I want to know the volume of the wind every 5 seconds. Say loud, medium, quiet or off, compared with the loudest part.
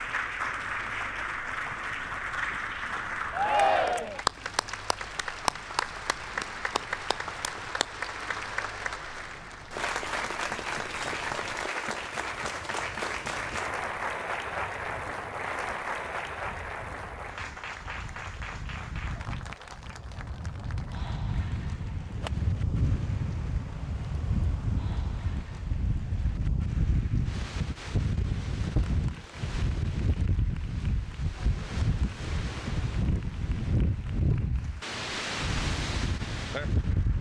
quiet, quiet, quiet, quiet, loud, loud, loud, loud.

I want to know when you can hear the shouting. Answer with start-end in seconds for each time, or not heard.
3.3-4.2.